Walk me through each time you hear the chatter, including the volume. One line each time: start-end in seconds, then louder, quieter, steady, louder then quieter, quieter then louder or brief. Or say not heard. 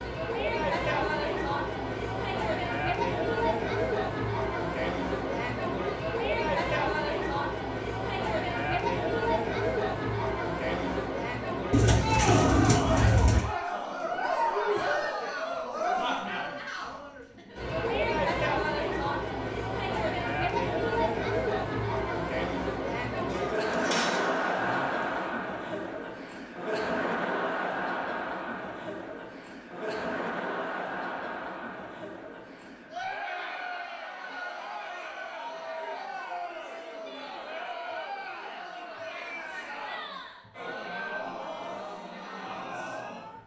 0.0-43.4 quieter.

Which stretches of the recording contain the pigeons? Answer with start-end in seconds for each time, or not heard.
11.7-13.4, 23.3-25.3.